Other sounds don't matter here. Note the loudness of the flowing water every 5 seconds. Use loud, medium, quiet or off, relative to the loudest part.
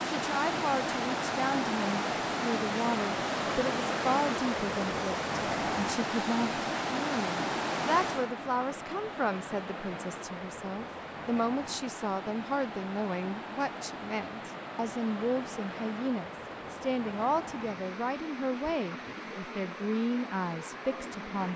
loud, loud, medium, medium, medium.